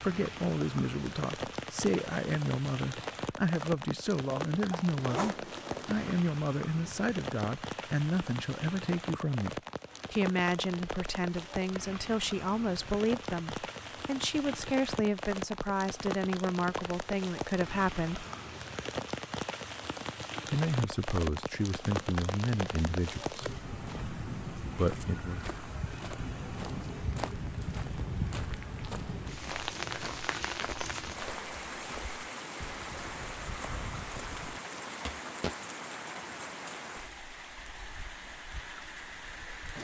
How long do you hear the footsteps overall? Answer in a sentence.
You can hear the footsteps for 12 seconds altogether.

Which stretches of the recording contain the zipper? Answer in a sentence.
The zipper can be heard from 4.8 to 6.2 s.